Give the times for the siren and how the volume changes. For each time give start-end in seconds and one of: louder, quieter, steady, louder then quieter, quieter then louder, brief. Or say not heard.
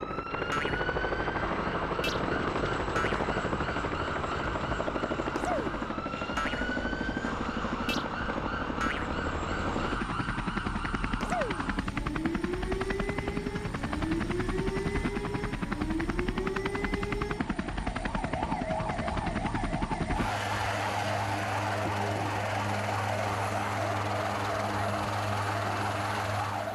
0.0-26.6 steady.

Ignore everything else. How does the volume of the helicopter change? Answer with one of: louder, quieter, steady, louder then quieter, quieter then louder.
steady.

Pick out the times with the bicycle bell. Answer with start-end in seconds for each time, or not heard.
not heard.